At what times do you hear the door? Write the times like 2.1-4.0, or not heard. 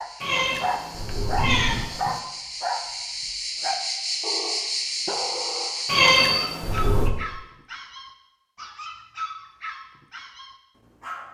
not heard.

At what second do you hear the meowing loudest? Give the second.
6 s.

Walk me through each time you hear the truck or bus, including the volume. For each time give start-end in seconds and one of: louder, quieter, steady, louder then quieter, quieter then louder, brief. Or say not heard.
not heard.